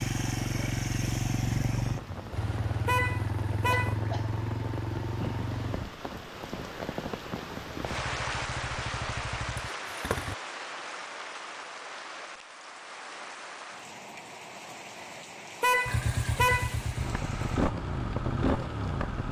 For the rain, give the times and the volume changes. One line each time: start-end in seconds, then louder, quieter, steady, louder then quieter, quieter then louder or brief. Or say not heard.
0.0-19.2 louder then quieter.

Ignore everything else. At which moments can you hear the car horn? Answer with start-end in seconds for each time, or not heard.
2.9-4.0, 15.6-16.8.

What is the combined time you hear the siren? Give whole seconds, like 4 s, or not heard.
not heard.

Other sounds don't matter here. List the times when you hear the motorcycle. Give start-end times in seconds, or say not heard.
0.0-5.9, 7.8-10.3, 15.8-19.2.